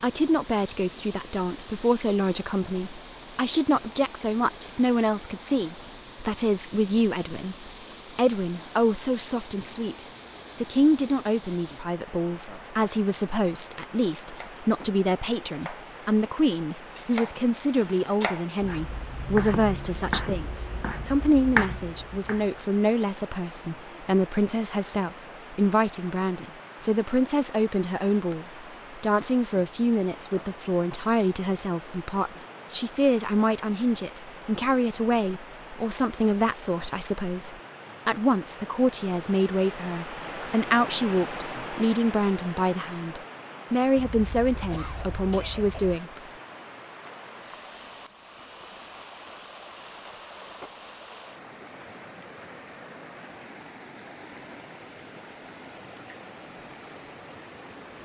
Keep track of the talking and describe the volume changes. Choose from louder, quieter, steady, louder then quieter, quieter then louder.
steady.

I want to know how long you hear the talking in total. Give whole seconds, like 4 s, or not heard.
46 s.